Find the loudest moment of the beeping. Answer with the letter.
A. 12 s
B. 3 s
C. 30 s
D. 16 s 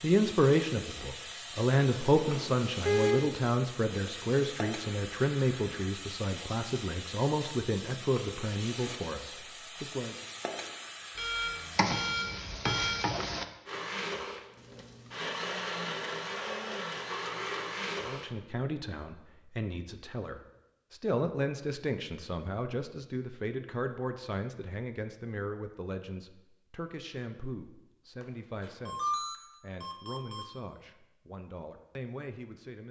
B.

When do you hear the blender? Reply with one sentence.
The blender can be heard from 13.7 to 18.4 s.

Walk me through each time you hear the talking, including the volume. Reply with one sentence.
You can hear the talking from 0.0 to 10.2 s, getting quieter; and from 18.0 to 32.8 s, getting quieter.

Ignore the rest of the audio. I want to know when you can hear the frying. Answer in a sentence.
You can hear the frying from 0.0 to 13.4 s.